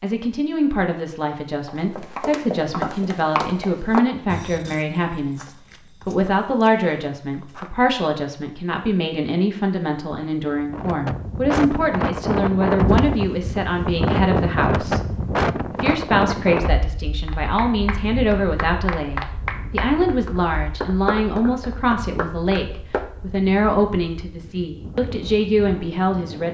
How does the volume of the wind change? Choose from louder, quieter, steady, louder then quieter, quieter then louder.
quieter.